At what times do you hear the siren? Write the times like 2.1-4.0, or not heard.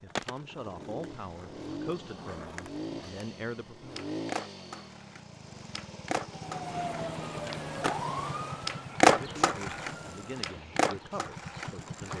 6.2-10.5.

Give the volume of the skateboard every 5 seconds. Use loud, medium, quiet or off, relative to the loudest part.
quiet, loud, medium.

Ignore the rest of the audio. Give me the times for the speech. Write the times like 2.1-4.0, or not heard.
0.0-4.0, 9.2-12.1.